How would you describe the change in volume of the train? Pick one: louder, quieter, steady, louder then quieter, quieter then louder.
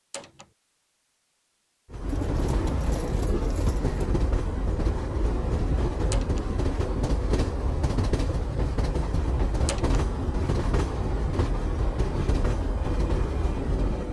steady.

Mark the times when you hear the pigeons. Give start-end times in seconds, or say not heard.
2.0-4.1.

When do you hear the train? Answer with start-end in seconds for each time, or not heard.
1.9-14.0.